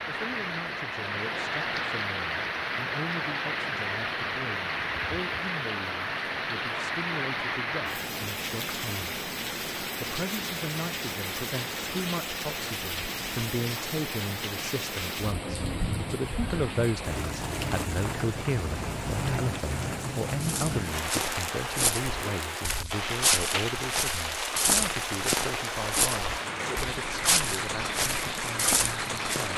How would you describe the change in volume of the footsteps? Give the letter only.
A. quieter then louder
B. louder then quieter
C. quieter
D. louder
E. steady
E.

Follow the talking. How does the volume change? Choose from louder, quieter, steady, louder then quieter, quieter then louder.
louder then quieter.